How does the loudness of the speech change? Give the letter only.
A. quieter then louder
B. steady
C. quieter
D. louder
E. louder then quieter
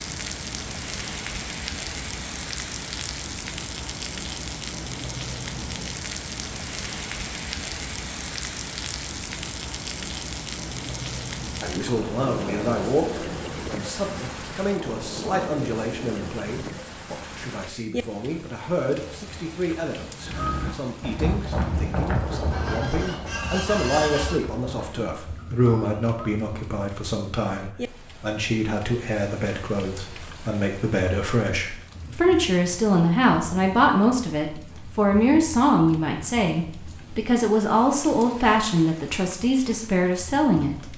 D.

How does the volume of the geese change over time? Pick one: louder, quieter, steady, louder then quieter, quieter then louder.
quieter.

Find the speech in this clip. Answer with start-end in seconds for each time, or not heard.
11.6-40.9.